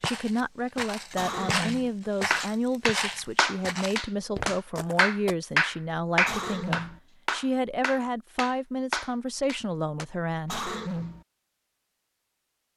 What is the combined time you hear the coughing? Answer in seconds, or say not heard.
2 s.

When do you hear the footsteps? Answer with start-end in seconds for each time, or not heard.
0.0-5.3.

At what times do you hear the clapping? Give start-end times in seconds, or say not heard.
2.3-10.1.